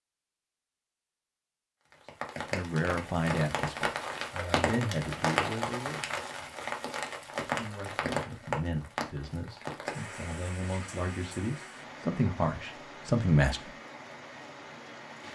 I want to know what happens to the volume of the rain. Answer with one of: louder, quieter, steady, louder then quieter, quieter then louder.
quieter.